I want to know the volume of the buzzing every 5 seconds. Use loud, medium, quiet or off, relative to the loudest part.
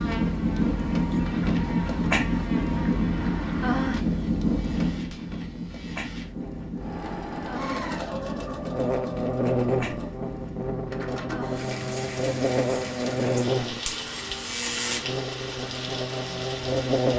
quiet, loud, loud, loud.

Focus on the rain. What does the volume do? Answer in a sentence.
The volume of the rain goes down.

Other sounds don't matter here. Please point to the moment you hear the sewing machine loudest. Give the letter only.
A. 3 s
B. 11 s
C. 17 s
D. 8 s
D.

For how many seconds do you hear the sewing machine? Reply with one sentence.
You can hear the sewing machine for 5 seconds altogether.